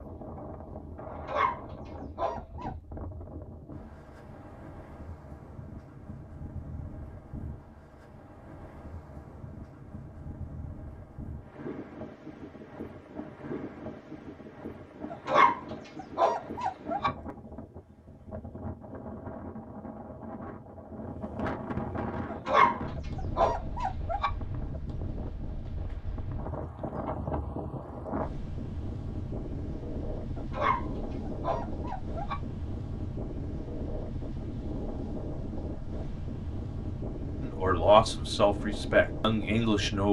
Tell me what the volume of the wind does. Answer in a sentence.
The loudness of the wind goes up.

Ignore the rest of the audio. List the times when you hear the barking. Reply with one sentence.
You can hear the barking from 1.1 to 2.7 s, from 15.1 to 17.1 s, from 22.3 to 24.3 s and from 30.4 to 32.4 s.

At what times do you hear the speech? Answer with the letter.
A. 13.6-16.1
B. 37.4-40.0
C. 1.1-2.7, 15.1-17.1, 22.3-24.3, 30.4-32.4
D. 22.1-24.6
B.